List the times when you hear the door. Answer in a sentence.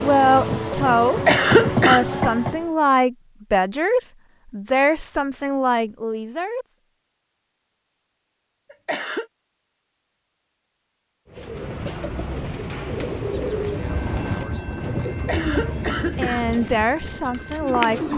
You can't hear the door here.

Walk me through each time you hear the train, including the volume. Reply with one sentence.
The train can be heard briefly from 0.0 to 2.7 s; and from 13.7 to 18.1 s, getting quieter.